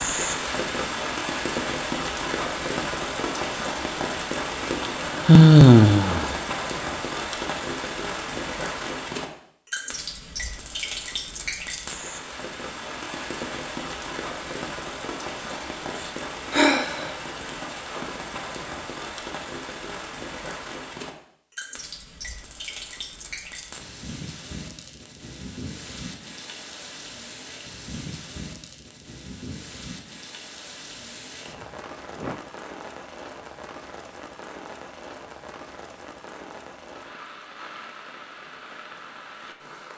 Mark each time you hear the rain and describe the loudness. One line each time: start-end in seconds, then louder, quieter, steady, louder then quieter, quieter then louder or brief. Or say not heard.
0.0-39.9 quieter.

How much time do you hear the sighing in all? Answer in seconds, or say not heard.
3 s.